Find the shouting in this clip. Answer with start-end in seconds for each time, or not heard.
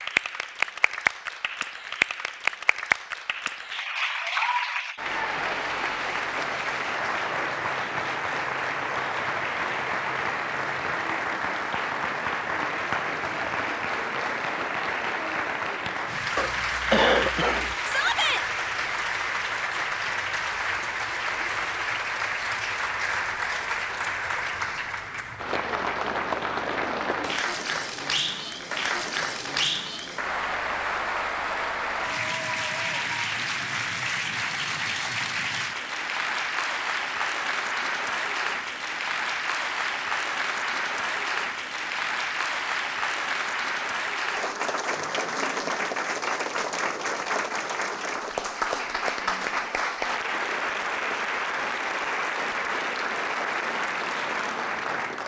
17.9-18.4.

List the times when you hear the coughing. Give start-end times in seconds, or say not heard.
16.4-17.8.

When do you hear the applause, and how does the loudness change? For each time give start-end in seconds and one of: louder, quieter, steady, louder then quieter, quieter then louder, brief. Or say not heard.
0.0-55.2 steady.